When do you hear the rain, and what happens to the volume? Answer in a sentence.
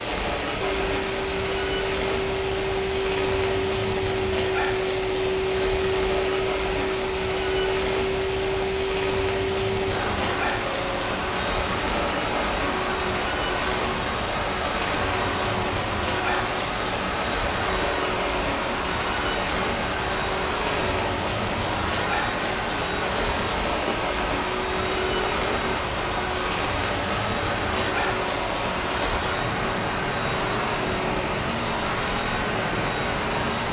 The rain can be heard from 0.0 to 33.6 s, at a steady volume.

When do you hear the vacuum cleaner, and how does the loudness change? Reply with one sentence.
The vacuum cleaner can be heard from 0.0 to 33.6 s, at a steady volume.